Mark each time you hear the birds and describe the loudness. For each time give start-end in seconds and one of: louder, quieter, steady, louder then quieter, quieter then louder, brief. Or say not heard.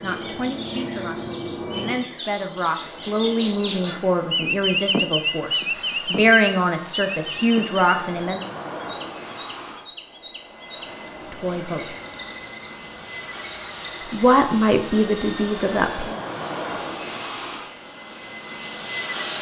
0.0-14.6 louder then quieter.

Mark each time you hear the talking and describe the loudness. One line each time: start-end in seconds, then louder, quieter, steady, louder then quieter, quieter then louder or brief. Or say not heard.
0.0-8.4 louder
11.3-11.8 brief
14.1-16.1 brief.